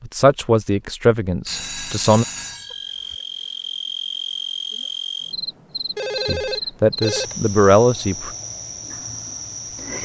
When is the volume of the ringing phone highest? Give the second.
6 s.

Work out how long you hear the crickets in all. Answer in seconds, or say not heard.
7 s.